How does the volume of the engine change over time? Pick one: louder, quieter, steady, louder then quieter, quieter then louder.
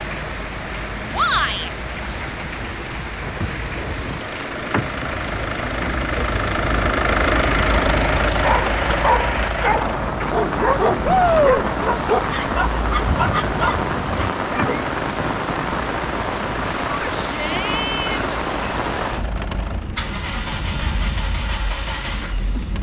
louder then quieter.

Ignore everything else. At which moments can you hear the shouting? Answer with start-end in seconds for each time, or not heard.
1.1-1.7, 11.1-11.6, 16.9-18.2.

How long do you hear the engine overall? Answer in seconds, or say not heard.
23 s.